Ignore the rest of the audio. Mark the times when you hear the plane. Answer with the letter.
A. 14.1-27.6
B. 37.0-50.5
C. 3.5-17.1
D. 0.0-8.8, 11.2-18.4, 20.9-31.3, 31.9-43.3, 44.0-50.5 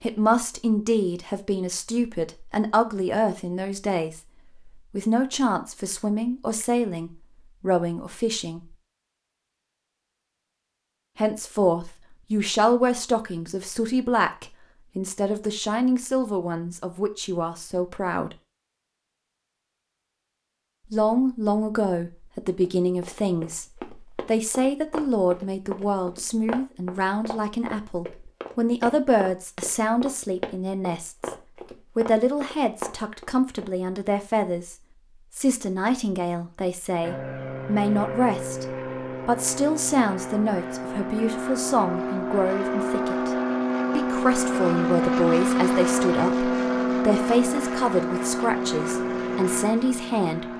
B.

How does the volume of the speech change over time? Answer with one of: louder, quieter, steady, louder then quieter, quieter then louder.
steady.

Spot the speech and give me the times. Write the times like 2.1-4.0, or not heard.
0.0-8.8, 11.2-18.4, 20.9-31.3, 31.9-43.3, 44.0-50.5.